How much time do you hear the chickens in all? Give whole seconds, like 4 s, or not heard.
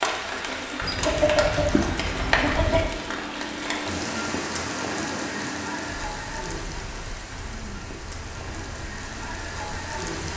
2 s.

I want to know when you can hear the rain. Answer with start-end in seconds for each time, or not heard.
0.0-10.3.